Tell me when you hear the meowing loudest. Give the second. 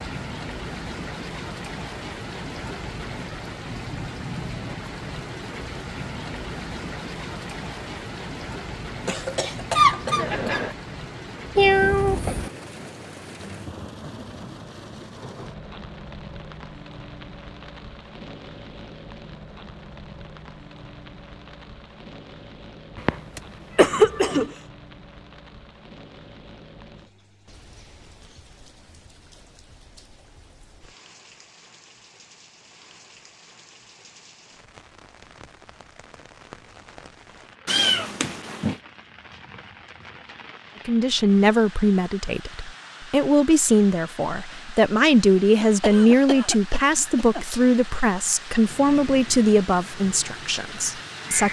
12 s.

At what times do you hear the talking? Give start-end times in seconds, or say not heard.
40.9-51.4.